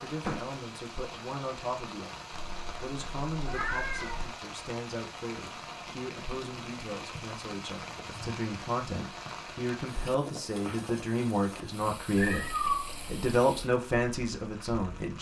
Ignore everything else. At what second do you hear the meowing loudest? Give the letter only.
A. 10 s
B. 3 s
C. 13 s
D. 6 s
C.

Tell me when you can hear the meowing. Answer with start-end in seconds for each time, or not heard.
2.3-4.3, 12.2-13.3.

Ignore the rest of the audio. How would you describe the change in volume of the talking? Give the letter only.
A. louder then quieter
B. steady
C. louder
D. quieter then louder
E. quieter
C.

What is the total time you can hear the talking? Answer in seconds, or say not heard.
15 s.